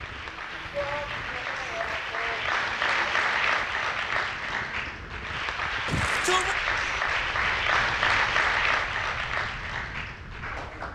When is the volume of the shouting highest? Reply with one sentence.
The volume of the shouting peaks at 6 seconds.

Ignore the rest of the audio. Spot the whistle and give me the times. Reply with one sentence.
You can't hear the whistle here.